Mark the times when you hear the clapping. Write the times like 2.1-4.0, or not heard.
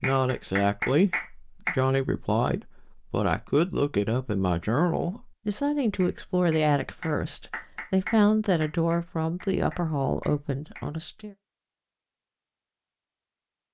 0.0-1.8, 6.0-10.9.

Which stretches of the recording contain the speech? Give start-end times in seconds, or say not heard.
0.0-11.3.